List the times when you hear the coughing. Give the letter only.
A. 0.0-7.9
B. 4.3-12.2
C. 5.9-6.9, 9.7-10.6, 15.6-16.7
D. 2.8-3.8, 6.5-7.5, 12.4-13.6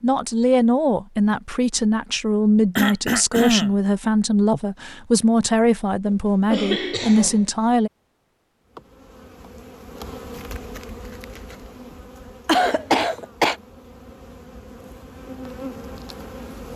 D.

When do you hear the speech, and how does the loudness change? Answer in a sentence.
You can hear the speech from 0.0 to 7.9 s, at a steady volume.